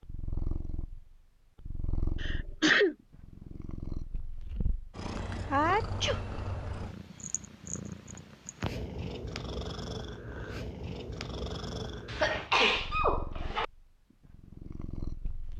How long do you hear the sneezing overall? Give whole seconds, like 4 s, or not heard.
3 s.